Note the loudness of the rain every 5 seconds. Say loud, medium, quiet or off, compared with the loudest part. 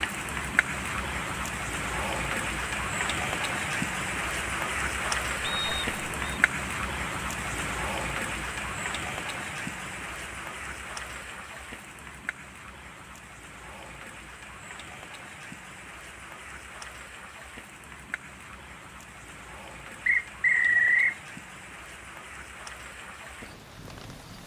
loud, loud, medium, quiet, quiet.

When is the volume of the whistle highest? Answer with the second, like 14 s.
21 s.